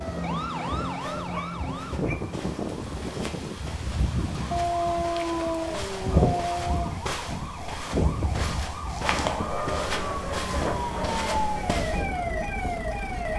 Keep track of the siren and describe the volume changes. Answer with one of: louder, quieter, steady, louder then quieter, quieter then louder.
quieter then louder.